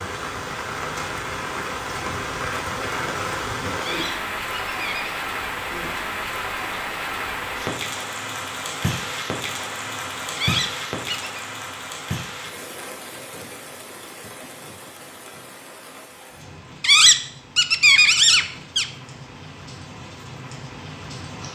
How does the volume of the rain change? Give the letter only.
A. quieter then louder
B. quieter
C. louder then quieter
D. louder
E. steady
B.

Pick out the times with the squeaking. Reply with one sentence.
You can hear the squeaking from 3.8 to 5.2 s, from 10.3 to 11.4 s and from 16.8 to 18.9 s.